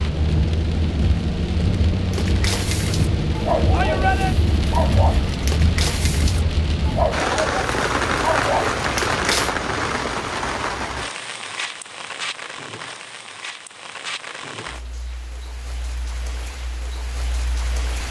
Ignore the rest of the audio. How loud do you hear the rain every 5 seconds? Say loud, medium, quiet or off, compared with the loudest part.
loud, loud, medium, quiet.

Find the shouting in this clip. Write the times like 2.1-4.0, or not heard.
3.7-4.3.